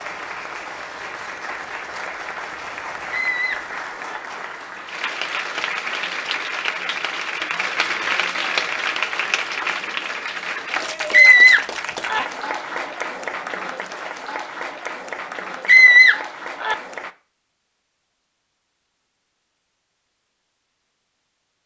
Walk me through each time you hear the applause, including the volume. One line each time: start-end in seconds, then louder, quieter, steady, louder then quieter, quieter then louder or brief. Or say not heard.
0.0-17.1 louder then quieter.